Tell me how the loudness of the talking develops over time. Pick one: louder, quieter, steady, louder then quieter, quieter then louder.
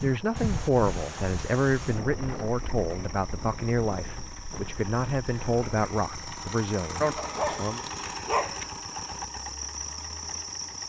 quieter.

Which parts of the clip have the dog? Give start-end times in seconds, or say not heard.
7.0-8.7.